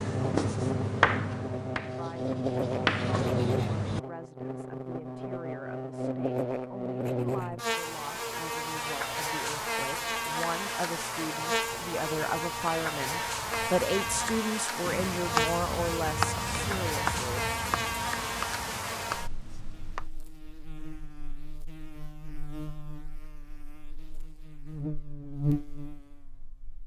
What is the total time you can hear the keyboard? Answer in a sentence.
You can't hear the keyboard here.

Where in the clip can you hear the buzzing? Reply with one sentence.
You can hear the buzzing from 0.0 to 26.8 s.